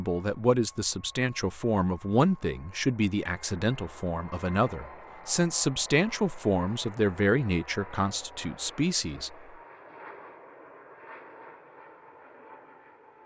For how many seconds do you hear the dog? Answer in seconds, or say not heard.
not heard.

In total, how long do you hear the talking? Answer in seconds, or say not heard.
9 s.